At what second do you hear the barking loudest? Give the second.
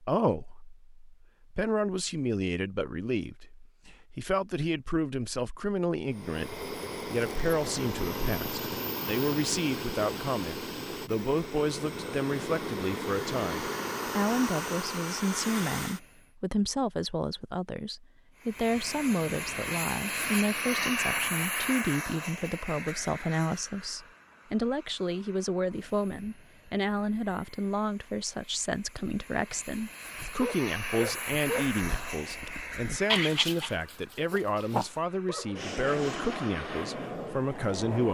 33 s.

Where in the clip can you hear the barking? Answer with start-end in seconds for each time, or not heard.
30.1-35.8.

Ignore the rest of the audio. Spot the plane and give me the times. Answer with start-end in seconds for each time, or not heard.
6.1-16.1, 18.4-38.0.